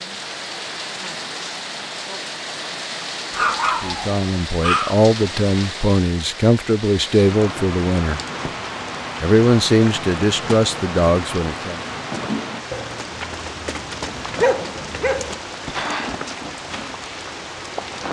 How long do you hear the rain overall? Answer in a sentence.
You can hear the rain for 18 seconds altogether.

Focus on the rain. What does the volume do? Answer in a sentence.
The volume of the rain stays about the same.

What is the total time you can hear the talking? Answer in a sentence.
You can hear the talking for 7 seconds altogether.